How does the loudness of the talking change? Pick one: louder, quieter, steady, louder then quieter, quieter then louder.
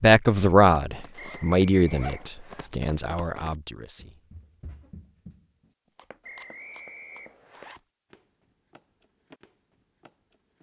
quieter.